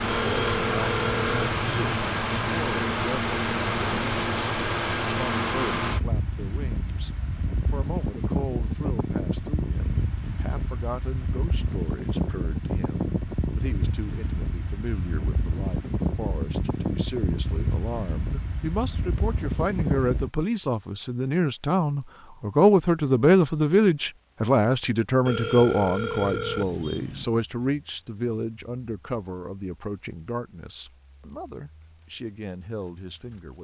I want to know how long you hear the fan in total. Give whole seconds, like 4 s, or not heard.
20 s.